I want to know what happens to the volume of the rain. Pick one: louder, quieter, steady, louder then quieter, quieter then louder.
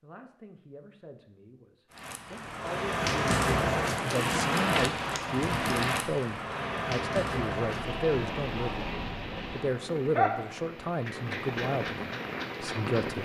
quieter.